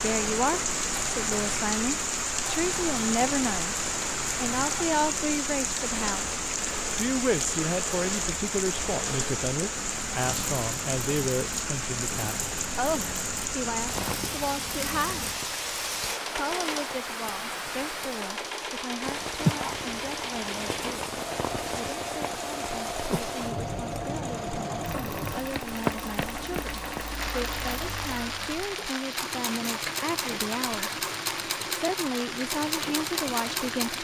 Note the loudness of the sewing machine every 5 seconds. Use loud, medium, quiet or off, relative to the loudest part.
medium, medium, medium, loud, loud, loud, loud.